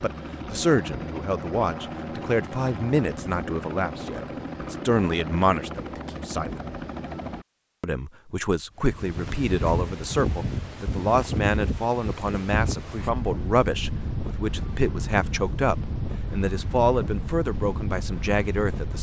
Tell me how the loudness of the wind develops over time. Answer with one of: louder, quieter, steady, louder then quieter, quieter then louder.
steady.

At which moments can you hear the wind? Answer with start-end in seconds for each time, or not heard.
8.8-18.9.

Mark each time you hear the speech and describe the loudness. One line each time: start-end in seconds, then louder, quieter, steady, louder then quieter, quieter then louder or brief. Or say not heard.
0.0-6.6 steady
7.8-18.9 steady.